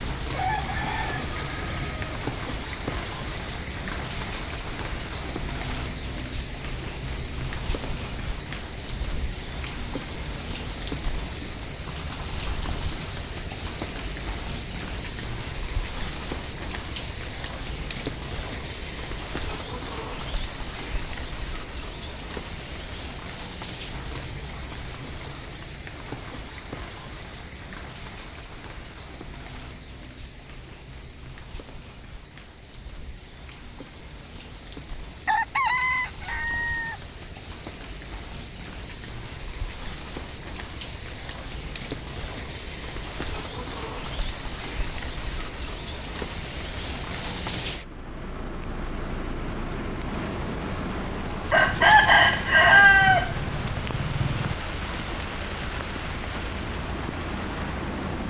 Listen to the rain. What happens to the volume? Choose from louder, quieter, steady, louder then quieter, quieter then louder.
quieter then louder.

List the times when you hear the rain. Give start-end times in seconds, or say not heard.
0.0-58.2.